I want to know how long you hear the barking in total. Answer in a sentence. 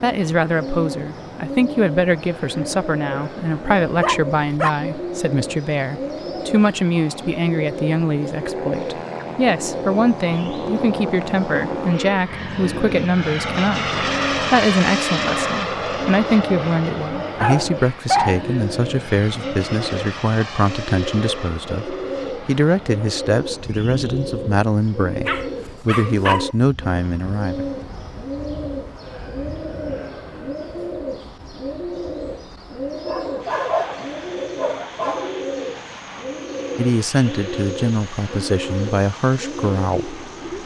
The barking can be heard for 6 seconds in total.